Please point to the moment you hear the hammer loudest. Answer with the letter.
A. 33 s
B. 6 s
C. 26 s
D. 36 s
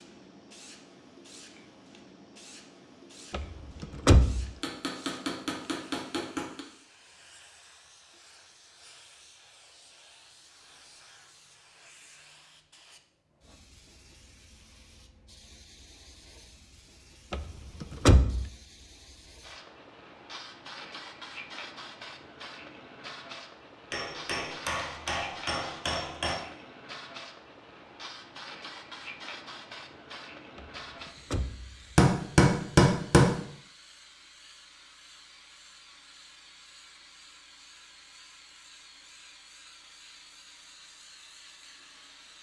A.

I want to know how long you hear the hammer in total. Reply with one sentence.
You can hear the hammer for 6 seconds altogether.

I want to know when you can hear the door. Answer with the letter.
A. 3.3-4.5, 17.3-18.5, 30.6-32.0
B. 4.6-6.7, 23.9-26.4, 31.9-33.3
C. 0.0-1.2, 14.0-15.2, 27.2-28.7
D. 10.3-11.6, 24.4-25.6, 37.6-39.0
A.